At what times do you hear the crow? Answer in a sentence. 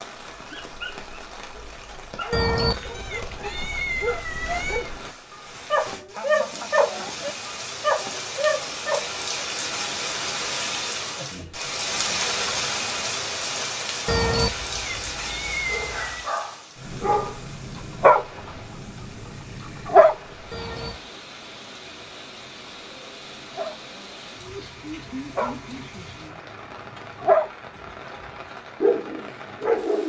You can't hear the crow here.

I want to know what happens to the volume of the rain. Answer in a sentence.
The loudness of the rain goes up, then down.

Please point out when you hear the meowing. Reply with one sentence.
The meowing can be heard from 2.3 to 4.9 s, from 14.1 to 16.2 s and from 20.5 to 21.1 s.